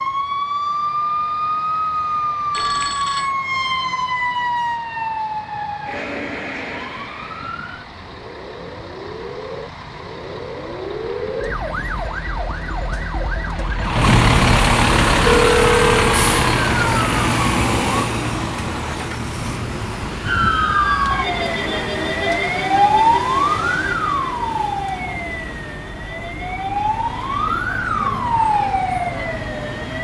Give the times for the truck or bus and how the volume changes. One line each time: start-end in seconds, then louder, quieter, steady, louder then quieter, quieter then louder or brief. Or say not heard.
0.0-29.9 louder then quieter.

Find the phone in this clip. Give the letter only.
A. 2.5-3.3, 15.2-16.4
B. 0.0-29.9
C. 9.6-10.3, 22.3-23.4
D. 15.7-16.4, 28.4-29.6
A.